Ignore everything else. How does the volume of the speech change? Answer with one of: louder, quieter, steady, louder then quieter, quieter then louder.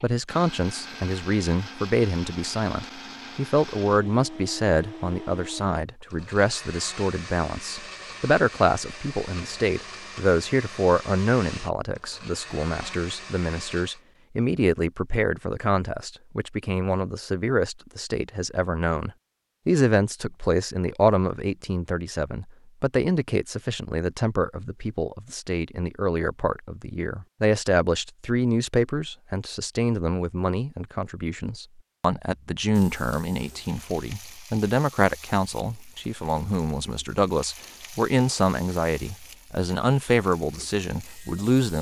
steady.